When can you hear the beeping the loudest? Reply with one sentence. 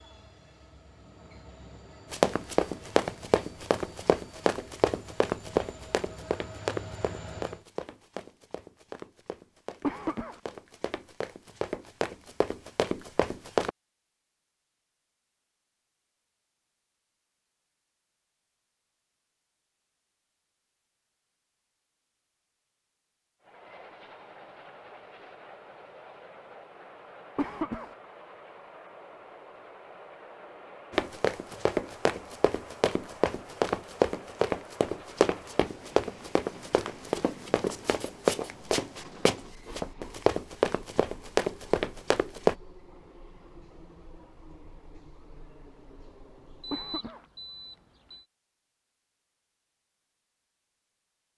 The loudest moment of the beeping is at 47 seconds.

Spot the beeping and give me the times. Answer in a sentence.
The beeping can be heard from 46.6 to 48.2 s.